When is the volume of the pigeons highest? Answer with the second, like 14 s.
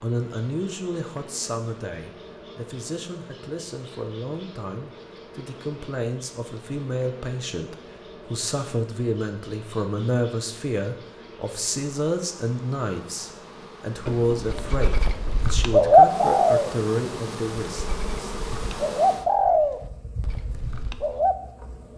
16 s.